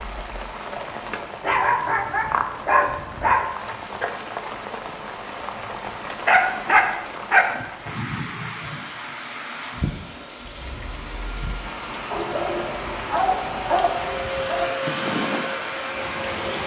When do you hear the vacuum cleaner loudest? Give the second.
15 s.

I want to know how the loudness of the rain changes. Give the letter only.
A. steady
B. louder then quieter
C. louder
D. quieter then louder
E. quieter
A.